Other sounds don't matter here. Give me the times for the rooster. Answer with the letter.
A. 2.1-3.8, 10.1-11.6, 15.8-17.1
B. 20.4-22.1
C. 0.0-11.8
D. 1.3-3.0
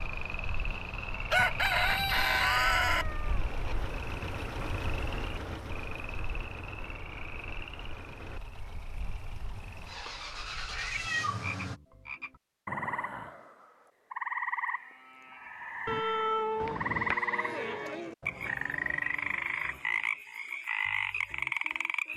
D.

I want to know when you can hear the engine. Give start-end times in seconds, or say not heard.
0.0-11.8.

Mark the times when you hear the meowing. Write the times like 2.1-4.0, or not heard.
2.1-3.8, 10.1-11.6, 15.8-17.1.